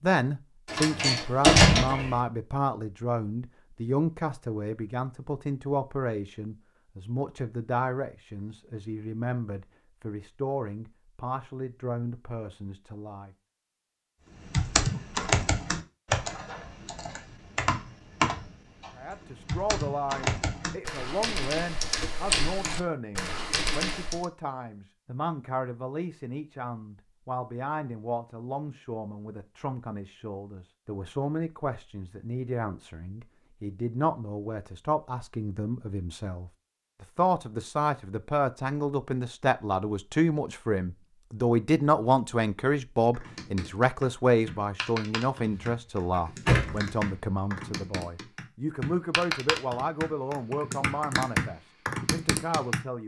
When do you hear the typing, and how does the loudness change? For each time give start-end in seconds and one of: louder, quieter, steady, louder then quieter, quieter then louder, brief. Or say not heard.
14.4-24.2 quieter then louder
43.1-52.8 louder.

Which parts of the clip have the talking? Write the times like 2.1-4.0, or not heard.
0.0-13.3, 18.9-53.0.